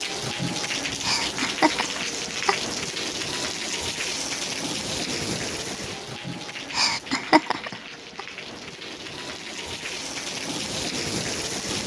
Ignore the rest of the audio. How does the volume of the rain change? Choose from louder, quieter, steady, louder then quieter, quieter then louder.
quieter then louder.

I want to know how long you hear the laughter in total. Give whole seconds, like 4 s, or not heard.
3 s.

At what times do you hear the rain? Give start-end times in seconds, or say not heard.
0.0-11.8.